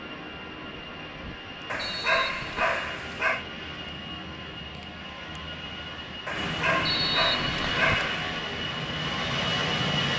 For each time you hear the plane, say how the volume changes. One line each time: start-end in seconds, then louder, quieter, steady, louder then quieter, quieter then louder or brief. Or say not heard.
0.0-10.1 louder.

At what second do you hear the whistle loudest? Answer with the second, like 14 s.
7 s.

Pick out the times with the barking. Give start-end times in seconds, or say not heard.
1.6-3.5, 6.2-8.3.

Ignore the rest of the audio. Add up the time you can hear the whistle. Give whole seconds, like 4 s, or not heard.
2 s.